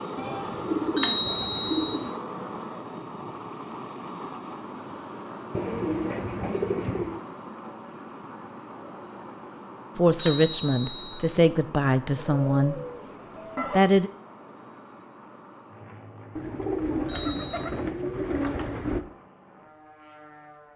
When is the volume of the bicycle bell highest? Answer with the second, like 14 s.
1 s.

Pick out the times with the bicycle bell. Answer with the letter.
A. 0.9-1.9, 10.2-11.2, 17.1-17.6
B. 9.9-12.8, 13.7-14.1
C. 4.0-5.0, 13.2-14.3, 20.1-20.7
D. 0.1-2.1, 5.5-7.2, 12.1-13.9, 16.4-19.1
A.